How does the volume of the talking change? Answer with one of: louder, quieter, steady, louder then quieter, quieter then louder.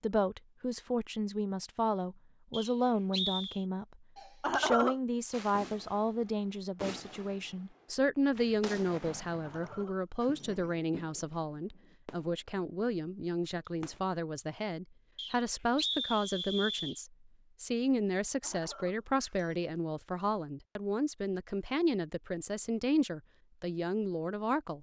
steady.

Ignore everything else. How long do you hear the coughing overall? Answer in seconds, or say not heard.
3 s.